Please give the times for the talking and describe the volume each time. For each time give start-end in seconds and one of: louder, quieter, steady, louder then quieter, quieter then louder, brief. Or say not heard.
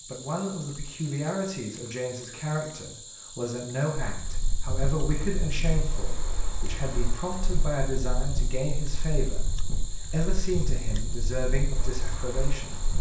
0.1-12.8 steady.